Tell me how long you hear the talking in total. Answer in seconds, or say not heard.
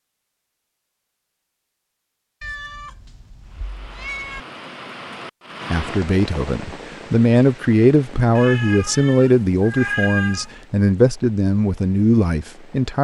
7 s.